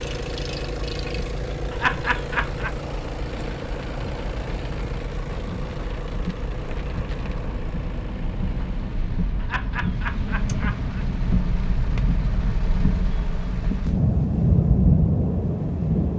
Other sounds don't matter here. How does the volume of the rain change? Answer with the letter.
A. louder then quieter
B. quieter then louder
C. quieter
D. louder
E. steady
D.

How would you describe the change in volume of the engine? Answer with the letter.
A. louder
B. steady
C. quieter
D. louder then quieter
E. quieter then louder
C.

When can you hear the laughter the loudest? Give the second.
2 s.